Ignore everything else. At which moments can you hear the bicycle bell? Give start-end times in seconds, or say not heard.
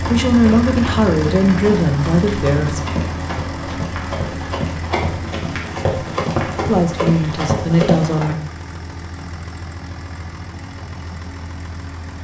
not heard.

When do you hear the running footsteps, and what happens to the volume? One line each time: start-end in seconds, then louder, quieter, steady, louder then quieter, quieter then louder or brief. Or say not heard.
0.0-8.3 louder.